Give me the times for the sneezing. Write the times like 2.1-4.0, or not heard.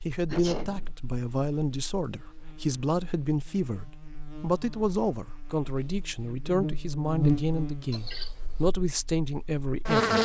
0.2-0.9, 7.9-8.7.